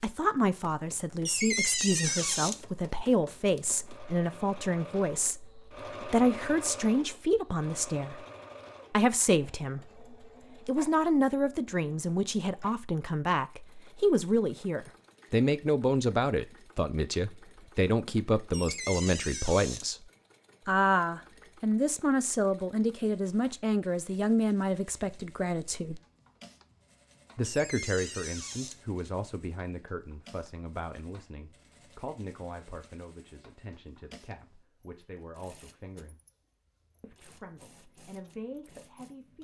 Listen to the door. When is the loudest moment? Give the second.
2 s.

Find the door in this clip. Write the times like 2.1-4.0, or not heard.
1.2-2.6, 18.5-19.9, 27.4-28.8.